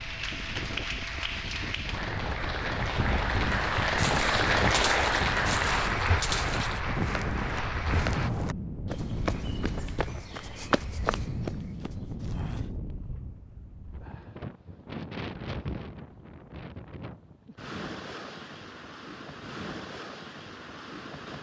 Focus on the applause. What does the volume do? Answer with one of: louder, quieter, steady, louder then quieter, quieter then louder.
louder then quieter.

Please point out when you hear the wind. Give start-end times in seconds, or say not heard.
0.0-21.3.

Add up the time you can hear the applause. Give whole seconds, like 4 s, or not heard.
8 s.